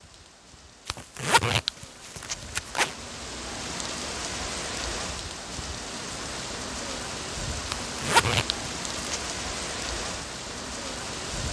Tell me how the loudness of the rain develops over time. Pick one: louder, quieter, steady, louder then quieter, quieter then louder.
louder.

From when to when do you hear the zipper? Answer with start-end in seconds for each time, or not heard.
0.8-3.0, 7.7-9.2.